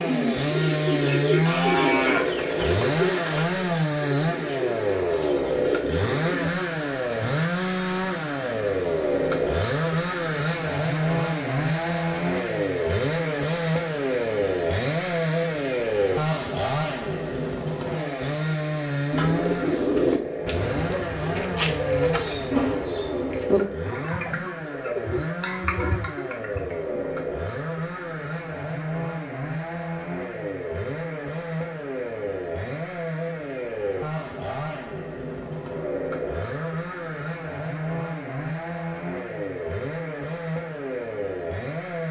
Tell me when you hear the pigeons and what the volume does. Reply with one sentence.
You can hear the pigeons from 0.0 to 6.5 s, getting quieter; and from 19.1 to 27.0 s, getting quieter.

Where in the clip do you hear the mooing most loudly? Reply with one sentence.
The loudest moment of the mooing is at 2 seconds.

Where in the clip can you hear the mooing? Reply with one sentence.
The mooing can be heard from 1.4 to 3.5 s.